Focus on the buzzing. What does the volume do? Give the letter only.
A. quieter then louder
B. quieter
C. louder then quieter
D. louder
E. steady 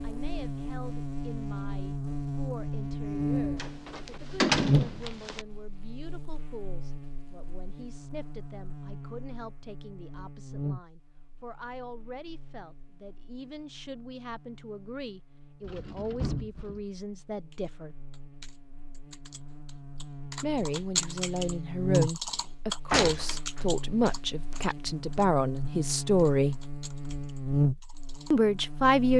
A.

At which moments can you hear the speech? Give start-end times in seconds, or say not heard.
0.0-17.9, 20.4-26.6, 28.3-29.1.